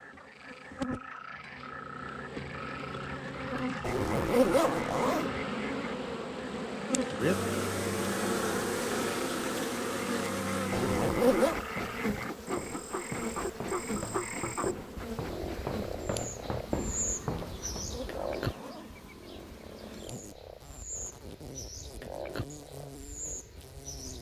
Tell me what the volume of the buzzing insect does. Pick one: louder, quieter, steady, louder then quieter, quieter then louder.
louder then quieter.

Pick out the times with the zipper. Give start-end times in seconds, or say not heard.
3.8-5.3, 10.7-11.6, 17.4-18.9.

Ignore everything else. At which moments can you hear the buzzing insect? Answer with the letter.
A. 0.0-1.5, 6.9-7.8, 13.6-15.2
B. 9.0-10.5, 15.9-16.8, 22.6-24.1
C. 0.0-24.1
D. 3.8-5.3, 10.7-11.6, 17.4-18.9
C.